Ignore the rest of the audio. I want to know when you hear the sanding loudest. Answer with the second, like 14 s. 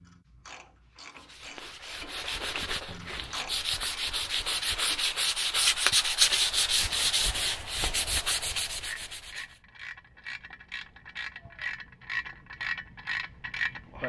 6 s.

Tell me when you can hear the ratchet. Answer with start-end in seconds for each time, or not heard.
0.0-5.3, 8.7-14.0.